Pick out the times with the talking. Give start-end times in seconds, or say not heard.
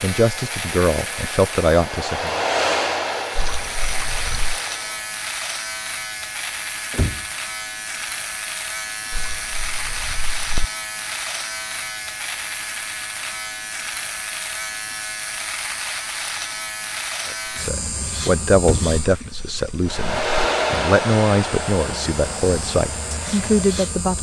0.0-2.4, 17.2-24.1.